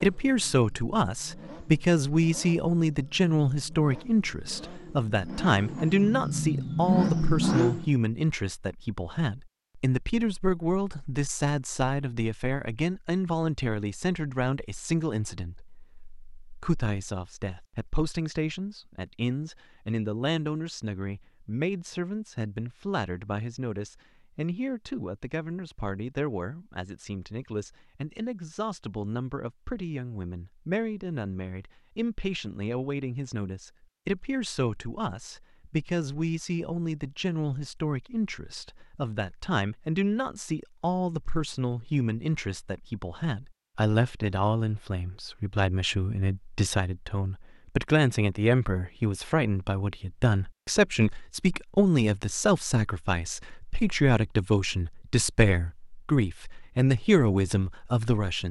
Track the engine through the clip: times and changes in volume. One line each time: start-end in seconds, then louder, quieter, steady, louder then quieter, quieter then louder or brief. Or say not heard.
0.0-8.0 louder.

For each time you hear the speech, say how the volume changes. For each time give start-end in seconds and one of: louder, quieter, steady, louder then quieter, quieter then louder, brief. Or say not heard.
0.0-58.4 quieter then louder.